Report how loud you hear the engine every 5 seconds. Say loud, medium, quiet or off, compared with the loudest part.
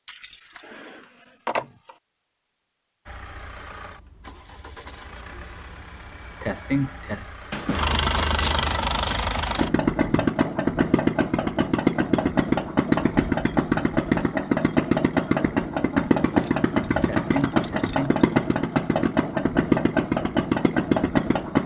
quiet, medium, loud, loud, loud.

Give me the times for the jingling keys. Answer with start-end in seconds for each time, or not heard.
0.1-1.9, 7.5-9.2, 16.4-18.2.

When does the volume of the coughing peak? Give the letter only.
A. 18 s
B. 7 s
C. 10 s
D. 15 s
B.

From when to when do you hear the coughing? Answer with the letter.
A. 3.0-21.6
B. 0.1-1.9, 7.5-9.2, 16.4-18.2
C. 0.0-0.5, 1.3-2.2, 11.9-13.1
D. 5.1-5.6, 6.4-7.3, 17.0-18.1
D.